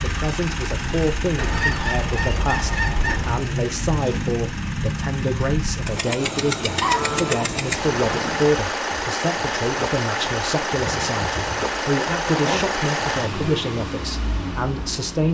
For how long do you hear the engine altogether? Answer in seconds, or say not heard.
15 s.